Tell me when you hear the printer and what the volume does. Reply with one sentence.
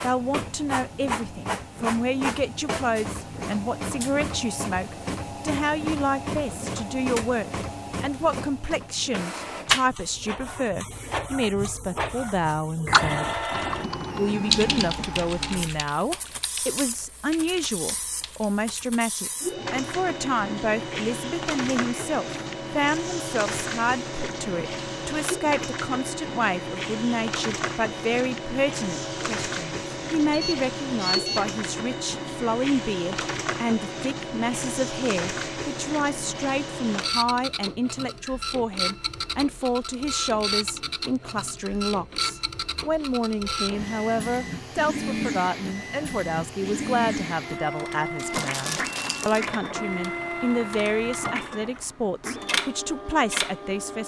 You can hear the printer from 0.0 to 54.0 s, at a steady volume.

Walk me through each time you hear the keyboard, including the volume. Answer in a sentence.
You can hear the keyboard from 12.8 to 18.6 s, getting louder then quieter.